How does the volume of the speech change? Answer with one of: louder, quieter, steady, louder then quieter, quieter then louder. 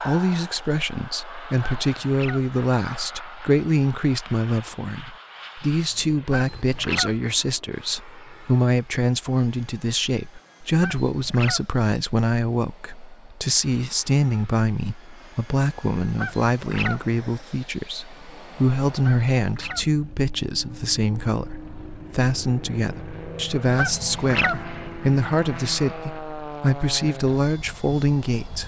steady.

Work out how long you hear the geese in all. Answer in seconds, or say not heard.
5 s.